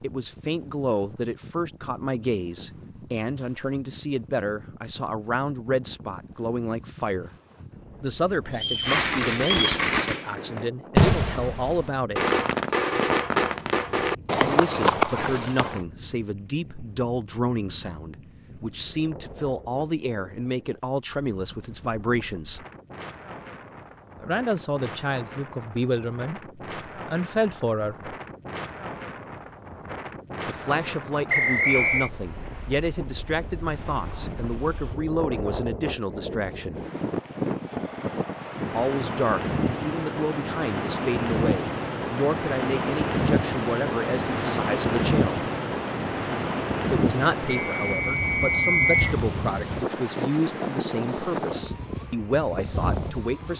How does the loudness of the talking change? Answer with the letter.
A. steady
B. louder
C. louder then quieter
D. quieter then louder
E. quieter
A.